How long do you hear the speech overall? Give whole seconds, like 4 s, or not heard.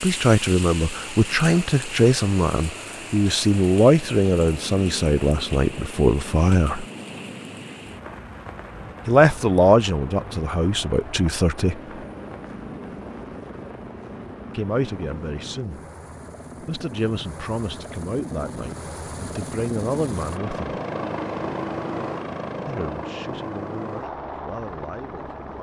18 s.